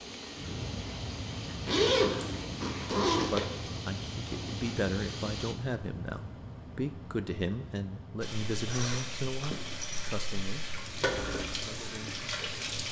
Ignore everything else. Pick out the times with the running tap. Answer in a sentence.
The running tap can be heard from 0.0 to 5.5 s and from 8.2 to 12.8 s.